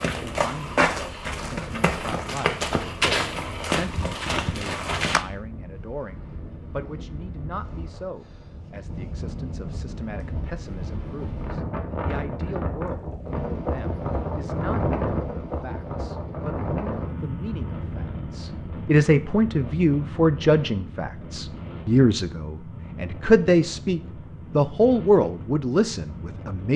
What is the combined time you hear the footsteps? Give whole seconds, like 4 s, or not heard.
5 s.